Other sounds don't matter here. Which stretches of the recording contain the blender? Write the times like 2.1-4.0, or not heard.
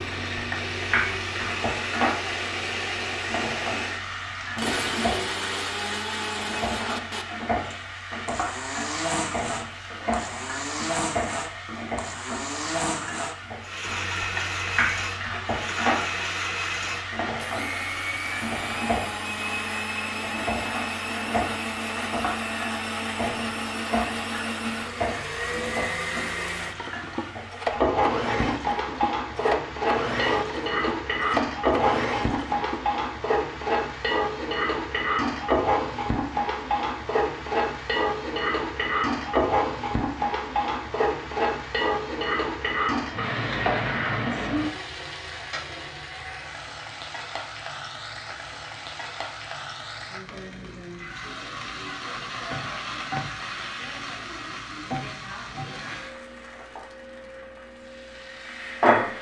0.0-32.9.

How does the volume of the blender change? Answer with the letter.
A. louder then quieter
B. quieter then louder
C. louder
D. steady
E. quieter
D.